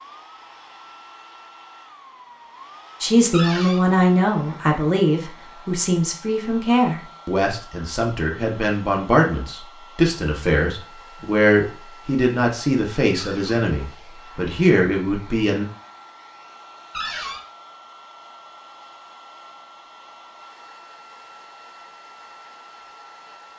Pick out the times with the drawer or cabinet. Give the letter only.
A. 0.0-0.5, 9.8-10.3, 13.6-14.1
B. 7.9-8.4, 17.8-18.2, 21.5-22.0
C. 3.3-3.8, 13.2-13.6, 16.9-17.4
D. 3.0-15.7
C.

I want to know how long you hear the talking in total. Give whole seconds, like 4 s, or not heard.
13 s.